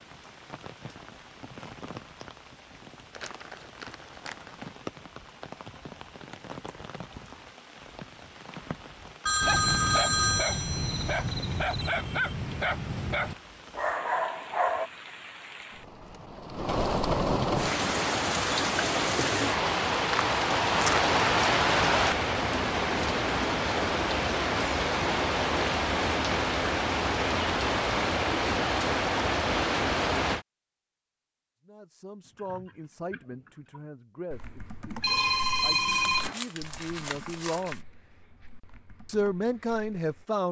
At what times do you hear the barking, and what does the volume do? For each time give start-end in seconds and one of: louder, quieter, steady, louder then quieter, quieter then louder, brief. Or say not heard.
9.4-14.9 steady.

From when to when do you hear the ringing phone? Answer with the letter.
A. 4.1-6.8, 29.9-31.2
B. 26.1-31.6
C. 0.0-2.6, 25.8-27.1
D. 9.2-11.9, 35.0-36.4
D.